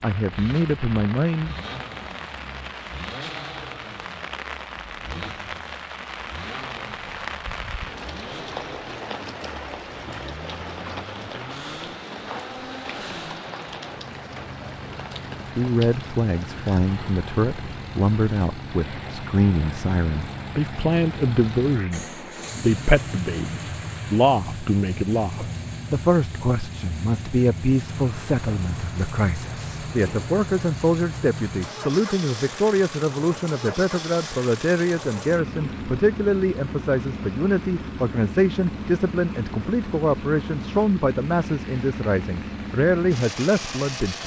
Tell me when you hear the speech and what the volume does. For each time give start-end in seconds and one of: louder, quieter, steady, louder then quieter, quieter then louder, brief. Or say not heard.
0.0-1.6 brief
15.6-44.2 steady.